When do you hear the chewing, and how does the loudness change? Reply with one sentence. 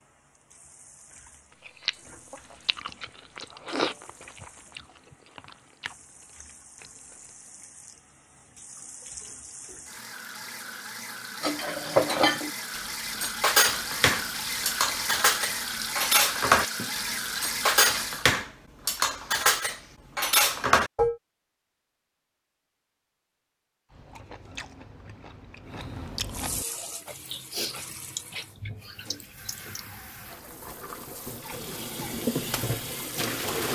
The chewing can be heard from 1.6 to 7.5 s, getting louder then quieter; and from 23.9 to 29.9 s, getting louder then quieter.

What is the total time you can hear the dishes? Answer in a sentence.
The dishes can be heard for 10 seconds in total.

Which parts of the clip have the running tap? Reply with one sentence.
You can hear the running tap from 0.0 to 18.3 s and from 26.3 to 33.7 s.